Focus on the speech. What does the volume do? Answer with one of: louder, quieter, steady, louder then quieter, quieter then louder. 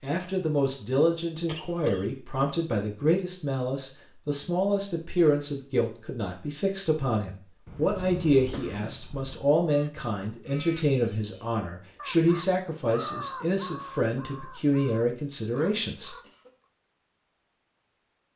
steady.